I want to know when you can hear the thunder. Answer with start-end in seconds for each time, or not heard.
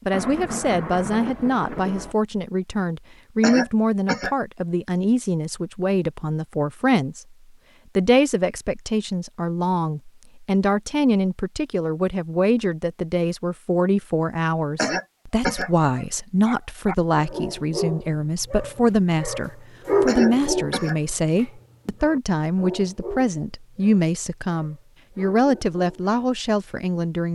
0.1-2.1.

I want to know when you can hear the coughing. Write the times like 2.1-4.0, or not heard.
3.4-4.3, 14.8-15.7, 20.1-20.9.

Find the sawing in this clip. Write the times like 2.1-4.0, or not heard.
not heard.